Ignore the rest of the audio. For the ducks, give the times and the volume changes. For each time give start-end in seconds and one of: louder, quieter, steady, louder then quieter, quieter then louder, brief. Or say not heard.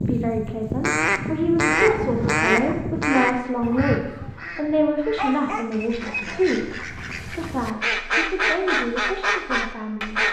0.0-10.2 quieter then louder.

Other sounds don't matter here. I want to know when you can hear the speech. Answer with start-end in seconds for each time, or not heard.
0.0-10.2.